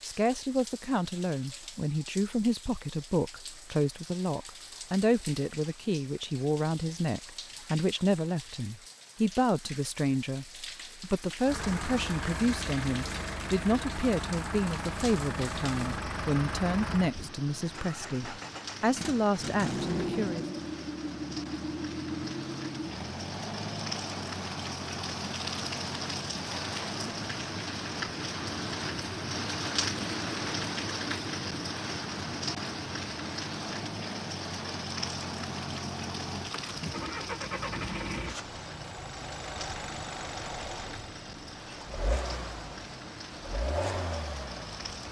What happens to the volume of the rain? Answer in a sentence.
The loudness of the rain goes up, then down.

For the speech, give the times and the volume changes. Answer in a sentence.
The speech can be heard from 0.0 to 20.4 s, at a steady volume.